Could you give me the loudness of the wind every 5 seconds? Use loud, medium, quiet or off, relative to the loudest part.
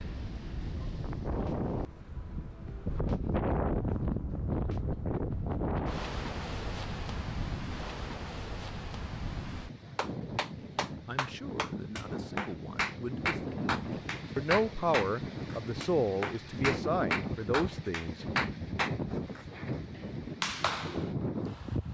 loud, loud, medium, loud, loud.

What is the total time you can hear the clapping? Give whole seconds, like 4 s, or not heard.
11 s.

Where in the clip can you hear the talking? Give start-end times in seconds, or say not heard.
10.6-18.2.